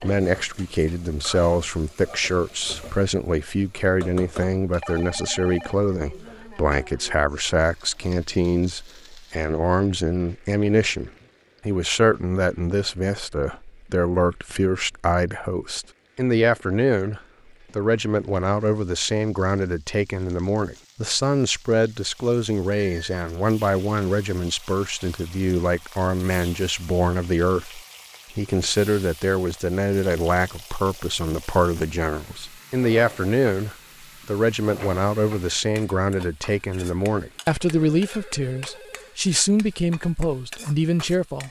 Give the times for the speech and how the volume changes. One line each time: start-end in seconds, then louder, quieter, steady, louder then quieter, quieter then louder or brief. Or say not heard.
0.0-41.4 steady.